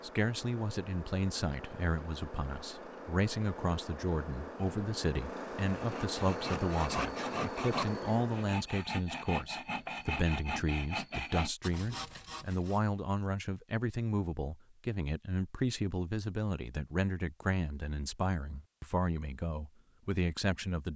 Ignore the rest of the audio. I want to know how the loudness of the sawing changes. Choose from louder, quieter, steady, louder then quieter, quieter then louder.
steady.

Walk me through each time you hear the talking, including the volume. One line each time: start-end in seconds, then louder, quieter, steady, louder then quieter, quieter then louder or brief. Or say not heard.
0.0-20.9 steady.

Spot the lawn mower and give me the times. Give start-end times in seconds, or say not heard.
0.0-8.7.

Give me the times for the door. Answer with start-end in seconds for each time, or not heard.
not heard.